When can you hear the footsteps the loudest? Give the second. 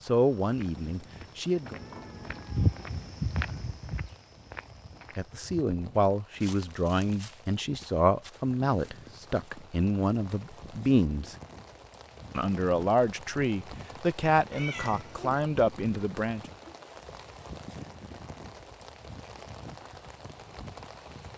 3 s.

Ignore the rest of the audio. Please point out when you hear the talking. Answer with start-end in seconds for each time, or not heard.
0.1-1.8, 5.2-11.3, 12.3-16.4.